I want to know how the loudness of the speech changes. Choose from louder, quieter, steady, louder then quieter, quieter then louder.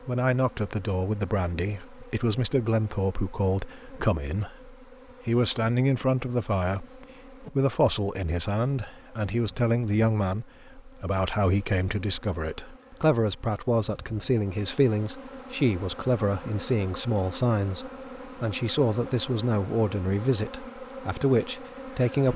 steady.